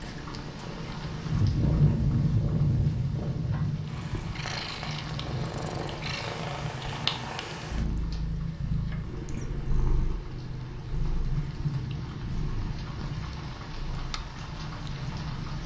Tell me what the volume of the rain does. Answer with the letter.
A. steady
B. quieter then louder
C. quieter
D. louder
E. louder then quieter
C.